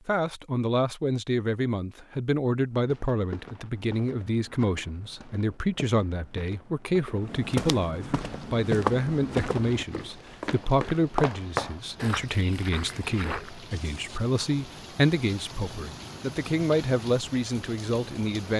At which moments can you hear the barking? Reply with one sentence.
You can't hear the barking here.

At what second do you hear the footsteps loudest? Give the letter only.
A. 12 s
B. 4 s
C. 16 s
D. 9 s
D.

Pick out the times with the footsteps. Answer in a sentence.
You can hear the footsteps from 2.7 to 13.6 s.